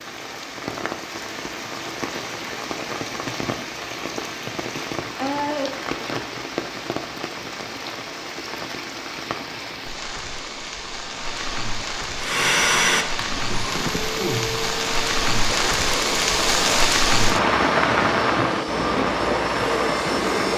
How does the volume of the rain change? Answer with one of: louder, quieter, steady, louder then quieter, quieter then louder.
louder.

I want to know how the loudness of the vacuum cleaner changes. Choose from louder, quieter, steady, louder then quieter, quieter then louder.
quieter then louder.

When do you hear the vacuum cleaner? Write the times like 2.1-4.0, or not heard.
12.2-20.5.